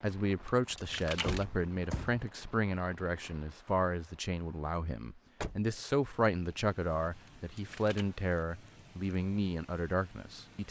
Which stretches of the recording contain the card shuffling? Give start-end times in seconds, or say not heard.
0.5-1.4, 7.3-8.1.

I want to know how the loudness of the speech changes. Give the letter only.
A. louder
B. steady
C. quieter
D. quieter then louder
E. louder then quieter
B.